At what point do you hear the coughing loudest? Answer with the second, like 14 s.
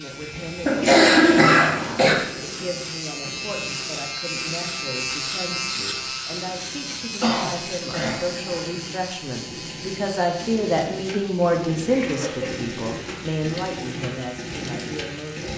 1 s.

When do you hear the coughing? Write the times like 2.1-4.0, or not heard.
0.6-2.1, 7.2-8.6, 12.0-12.5.